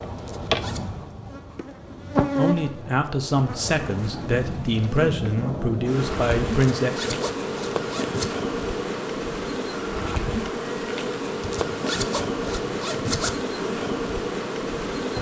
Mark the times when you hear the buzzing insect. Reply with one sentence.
The buzzing insect can be heard from 0.0 to 15.1 s.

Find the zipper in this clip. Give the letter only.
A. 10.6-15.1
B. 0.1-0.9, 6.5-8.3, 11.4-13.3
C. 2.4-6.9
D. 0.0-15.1
B.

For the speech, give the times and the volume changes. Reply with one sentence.
The speech can be heard from 2.4 to 6.9 s, at a steady volume.